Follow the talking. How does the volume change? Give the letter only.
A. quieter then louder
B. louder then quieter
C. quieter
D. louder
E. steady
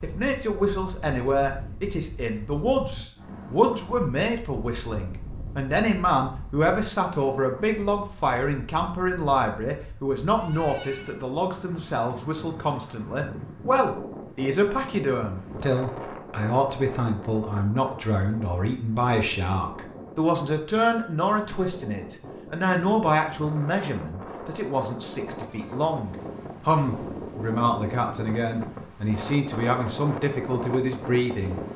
E.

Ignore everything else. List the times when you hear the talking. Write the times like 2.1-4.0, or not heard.
0.0-31.6.